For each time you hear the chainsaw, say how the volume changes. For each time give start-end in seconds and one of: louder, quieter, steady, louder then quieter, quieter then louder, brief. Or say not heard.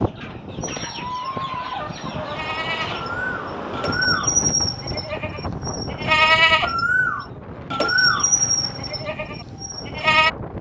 not heard.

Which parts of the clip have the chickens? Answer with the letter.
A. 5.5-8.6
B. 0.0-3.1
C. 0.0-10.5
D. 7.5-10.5
B.